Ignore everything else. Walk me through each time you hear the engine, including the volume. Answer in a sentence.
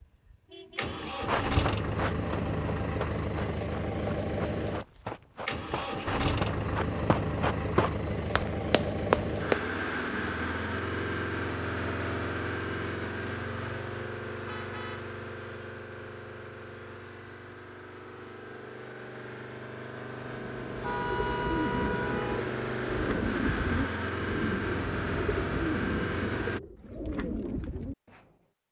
You can hear the engine from 0.0 to 26.6 s, getting quieter then louder.